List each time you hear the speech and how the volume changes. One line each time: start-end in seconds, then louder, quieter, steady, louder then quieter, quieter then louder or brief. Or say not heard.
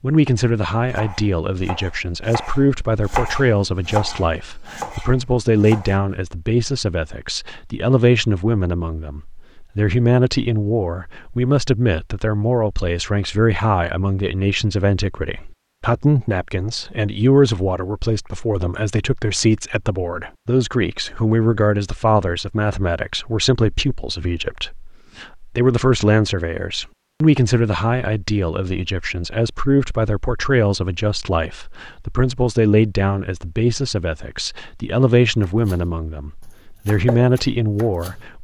0.0-38.3 steady.